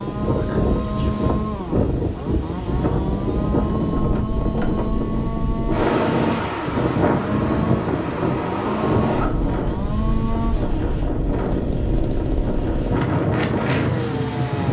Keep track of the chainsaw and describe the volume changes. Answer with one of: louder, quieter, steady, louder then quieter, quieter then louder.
steady.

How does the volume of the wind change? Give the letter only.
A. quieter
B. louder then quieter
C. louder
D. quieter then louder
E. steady
E.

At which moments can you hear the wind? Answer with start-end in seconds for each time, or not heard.
0.0-14.6.